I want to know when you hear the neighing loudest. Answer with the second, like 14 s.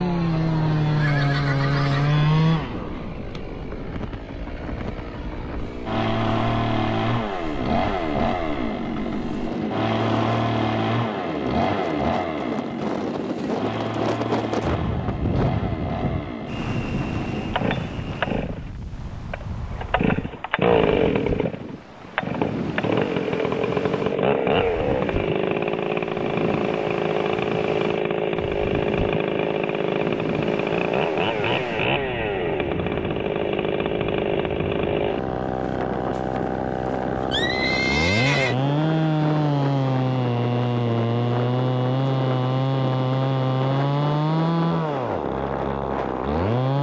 38 s.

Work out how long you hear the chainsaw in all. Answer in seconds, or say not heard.
47 s.